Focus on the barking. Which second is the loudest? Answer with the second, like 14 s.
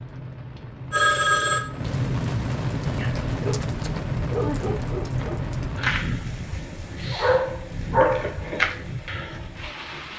8 s.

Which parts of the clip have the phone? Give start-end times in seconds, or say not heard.
0.9-1.6.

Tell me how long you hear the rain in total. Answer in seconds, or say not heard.
10 s.